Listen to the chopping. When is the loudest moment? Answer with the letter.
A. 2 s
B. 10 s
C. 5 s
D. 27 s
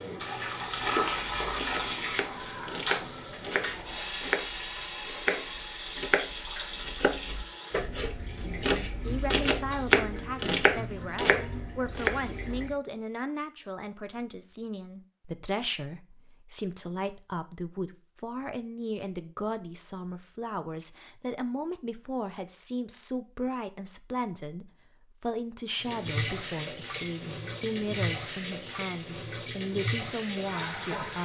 B.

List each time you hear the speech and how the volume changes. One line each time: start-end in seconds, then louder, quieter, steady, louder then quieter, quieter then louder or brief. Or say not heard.
8.4-31.1 steady.